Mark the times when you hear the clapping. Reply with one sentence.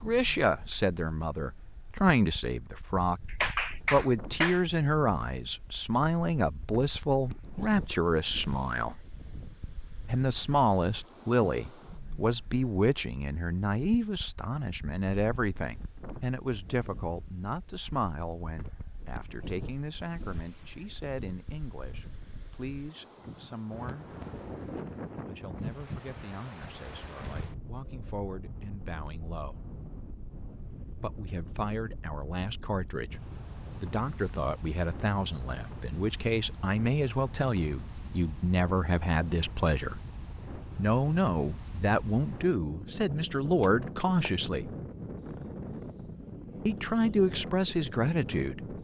The clapping can be heard from 3.2 to 4.6 s and from 43.6 to 44.3 s.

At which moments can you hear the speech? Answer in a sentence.
You can hear the speech from 0.0 to 9.0 s, from 10.1 to 24.1 s, from 25.2 to 29.6 s, from 31.0 to 40.0 s, from 40.8 to 44.7 s and from 46.6 to 48.7 s.